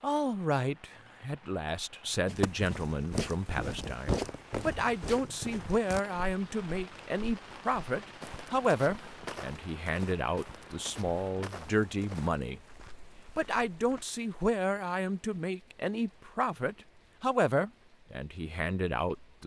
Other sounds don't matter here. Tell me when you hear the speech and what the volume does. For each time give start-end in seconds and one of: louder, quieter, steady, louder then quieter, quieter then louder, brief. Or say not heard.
0.0-19.4 steady.